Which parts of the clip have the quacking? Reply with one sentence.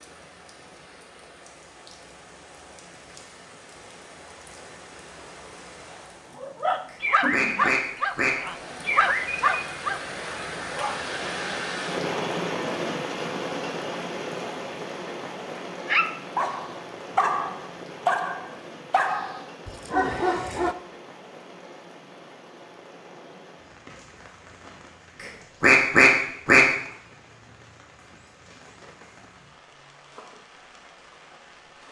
The quacking can be heard from 6.9 to 8.3 s and from 25.2 to 26.6 s.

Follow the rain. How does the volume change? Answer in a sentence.
The loudness of the rain goes up, then down.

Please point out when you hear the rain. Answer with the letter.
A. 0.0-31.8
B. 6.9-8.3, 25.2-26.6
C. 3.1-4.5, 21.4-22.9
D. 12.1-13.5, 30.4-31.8
A.